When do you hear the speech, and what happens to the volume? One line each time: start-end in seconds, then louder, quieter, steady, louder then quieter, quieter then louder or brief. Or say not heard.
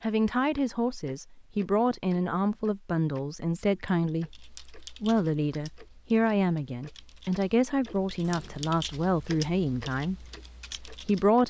0.0-11.4 steady.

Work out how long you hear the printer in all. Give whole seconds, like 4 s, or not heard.
not heard.